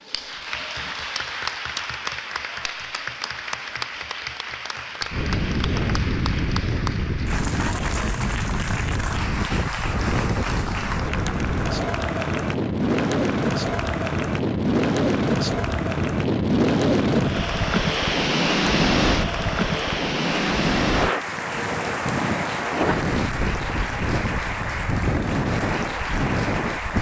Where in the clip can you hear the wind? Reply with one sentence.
The wind can be heard from 5.1 to 26.9 s.